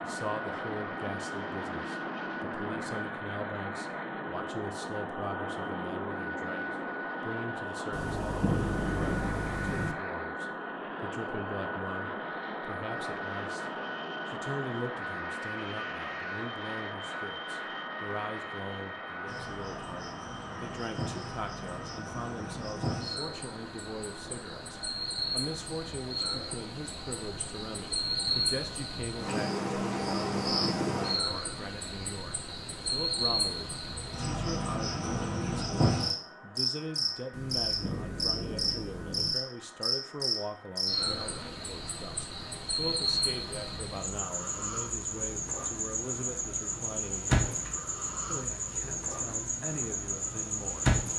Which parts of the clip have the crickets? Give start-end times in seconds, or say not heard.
19.2-51.1.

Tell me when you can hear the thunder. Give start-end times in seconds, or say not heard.
7.9-9.9, 37.3-39.4.